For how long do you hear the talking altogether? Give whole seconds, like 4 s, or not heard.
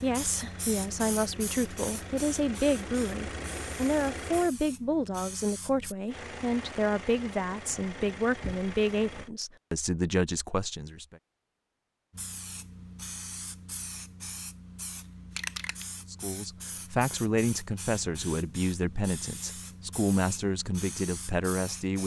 17 s.